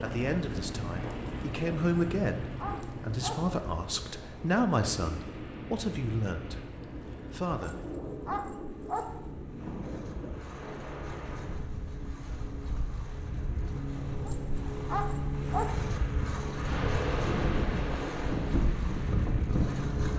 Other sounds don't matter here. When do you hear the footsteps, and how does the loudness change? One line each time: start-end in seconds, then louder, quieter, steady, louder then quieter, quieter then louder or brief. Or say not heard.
not heard.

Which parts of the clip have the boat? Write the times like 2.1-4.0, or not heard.
0.0-20.1.